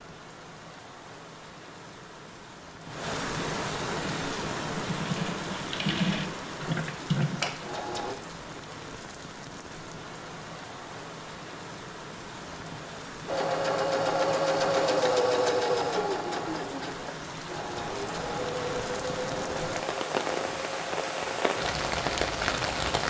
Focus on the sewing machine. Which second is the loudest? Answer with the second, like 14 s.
15 s.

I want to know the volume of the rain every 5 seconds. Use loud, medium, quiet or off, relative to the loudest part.
medium, medium, medium, medium, loud.